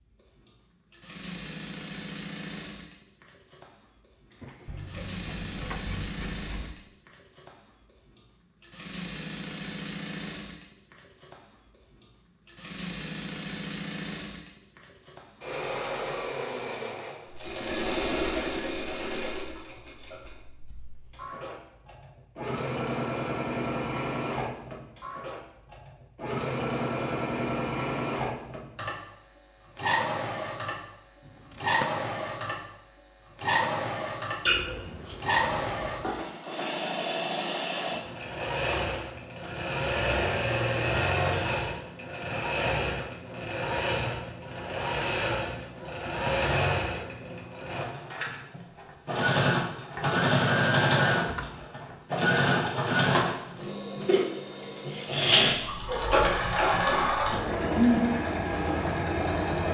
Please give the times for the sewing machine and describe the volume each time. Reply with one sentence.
The sewing machine can be heard from 0.0 to 59.6 s, getting louder.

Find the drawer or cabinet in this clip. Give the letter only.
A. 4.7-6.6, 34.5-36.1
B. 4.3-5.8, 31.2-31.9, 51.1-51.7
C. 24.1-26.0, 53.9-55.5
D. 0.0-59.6
B.